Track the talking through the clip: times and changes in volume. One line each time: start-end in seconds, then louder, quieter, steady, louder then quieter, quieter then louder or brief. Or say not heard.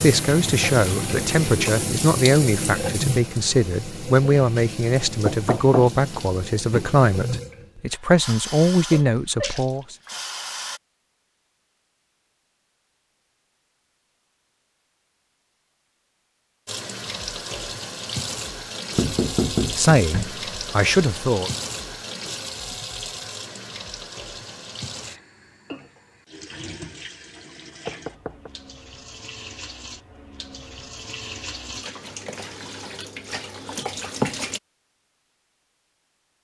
0.0-9.9 steady
19.8-21.5 brief.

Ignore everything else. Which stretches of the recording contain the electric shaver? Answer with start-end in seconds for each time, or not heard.
not heard.